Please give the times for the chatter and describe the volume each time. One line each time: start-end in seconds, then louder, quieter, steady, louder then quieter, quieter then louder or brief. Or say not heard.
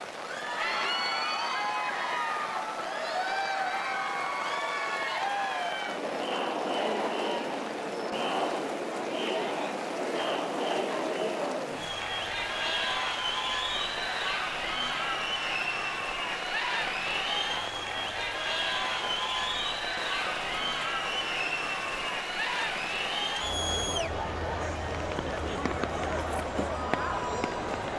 0.1-27.9 steady.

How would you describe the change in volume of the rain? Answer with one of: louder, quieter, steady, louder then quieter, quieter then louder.
steady.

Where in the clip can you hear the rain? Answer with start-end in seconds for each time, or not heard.
0.0-27.9.